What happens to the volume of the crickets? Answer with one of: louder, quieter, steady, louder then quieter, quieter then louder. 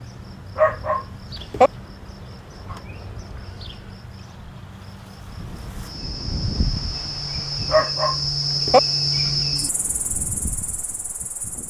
louder.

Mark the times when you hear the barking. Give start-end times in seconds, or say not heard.
0.6-1.7, 7.7-8.8.